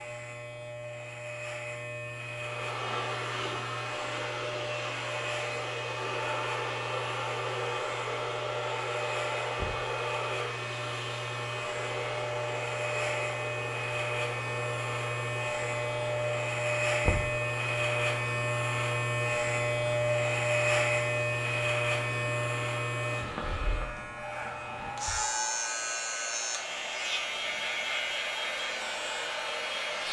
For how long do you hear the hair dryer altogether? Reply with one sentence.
You can hear the hair dryer for 28 seconds altogether.